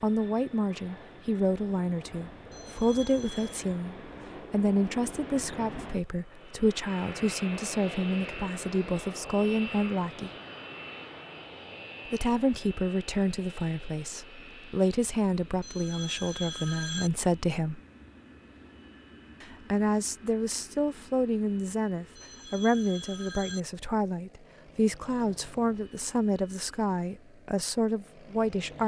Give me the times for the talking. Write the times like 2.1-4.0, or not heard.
0.0-10.3, 12.1-17.8, 19.4-28.8.